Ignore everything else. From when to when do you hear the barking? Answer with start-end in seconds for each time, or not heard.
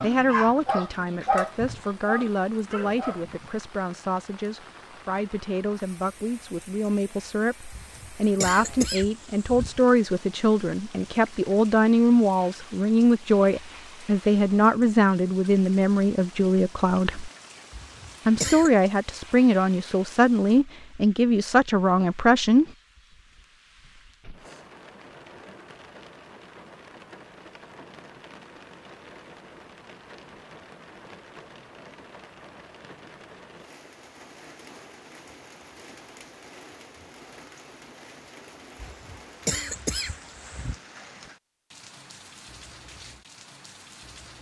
0.0-3.5.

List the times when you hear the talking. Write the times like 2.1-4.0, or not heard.
0.0-17.3, 18.2-22.6.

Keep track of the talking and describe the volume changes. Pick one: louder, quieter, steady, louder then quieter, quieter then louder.
louder.